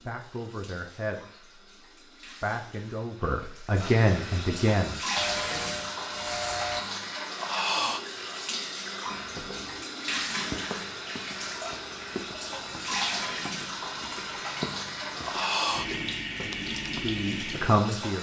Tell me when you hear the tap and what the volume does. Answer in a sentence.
You can hear the tap from 0.0 to 18.1 s, getting louder.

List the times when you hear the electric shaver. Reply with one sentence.
The electric shaver can be heard from 5.2 to 6.8 s.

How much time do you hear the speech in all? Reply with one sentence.
You can hear the speech for 6 seconds altogether.